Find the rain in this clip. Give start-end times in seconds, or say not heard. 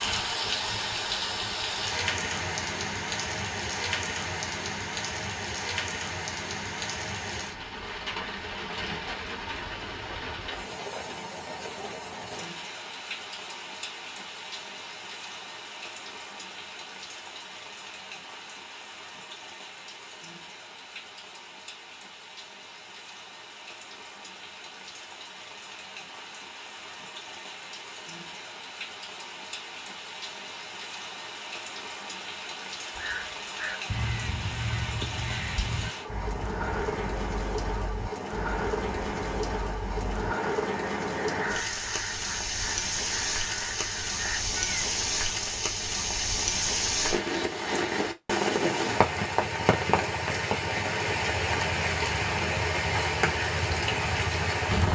0.0-54.9.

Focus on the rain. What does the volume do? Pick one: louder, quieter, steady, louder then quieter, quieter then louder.
quieter then louder.